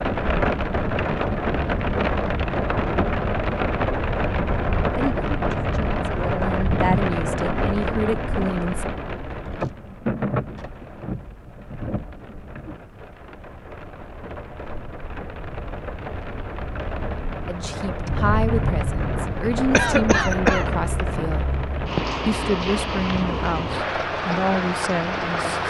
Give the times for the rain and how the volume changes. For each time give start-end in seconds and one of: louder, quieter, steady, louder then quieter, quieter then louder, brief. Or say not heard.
0.0-25.6 quieter then louder.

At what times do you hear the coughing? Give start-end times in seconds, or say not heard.
19.7-20.6.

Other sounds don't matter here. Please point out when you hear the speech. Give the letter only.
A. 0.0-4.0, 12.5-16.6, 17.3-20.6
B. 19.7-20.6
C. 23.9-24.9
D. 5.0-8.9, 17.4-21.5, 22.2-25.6
D.